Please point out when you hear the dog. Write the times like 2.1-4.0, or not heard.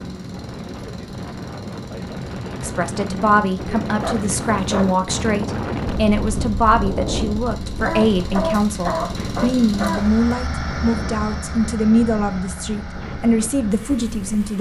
4.0-5.0, 7.8-10.2.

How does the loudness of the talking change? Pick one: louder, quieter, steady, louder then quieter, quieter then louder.
steady.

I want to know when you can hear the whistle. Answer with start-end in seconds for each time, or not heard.
not heard.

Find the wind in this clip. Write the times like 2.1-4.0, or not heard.
0.0-14.5.